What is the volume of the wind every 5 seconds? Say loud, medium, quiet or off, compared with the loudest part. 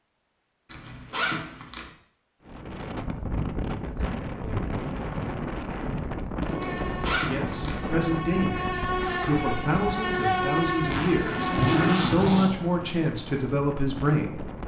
loud, loud, medium.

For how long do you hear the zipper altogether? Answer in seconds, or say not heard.
4 s.